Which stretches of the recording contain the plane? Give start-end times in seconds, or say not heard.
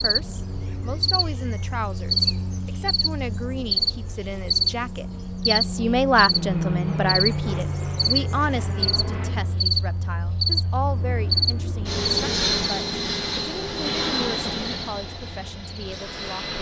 6.2-9.7, 10.8-16.5.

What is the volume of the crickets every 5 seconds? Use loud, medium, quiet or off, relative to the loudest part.
loud, loud, loud, quiet.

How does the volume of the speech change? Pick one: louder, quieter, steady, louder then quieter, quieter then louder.
louder then quieter.